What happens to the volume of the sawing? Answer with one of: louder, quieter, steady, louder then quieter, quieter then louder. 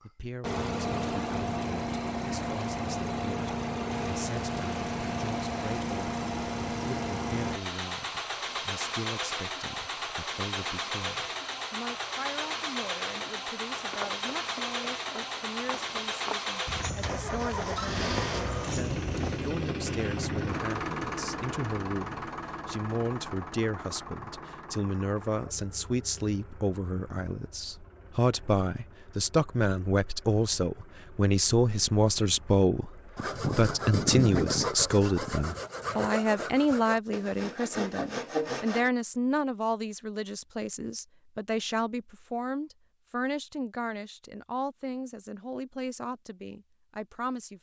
quieter then louder.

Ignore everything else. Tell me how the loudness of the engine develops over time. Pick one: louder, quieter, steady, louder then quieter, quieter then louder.
quieter.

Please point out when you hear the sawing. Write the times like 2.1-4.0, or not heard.
33.1-38.9.